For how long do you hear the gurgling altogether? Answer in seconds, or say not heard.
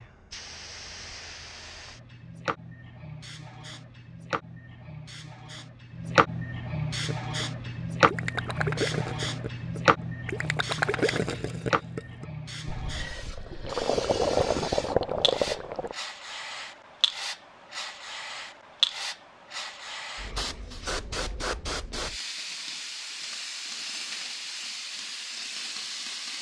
9 s.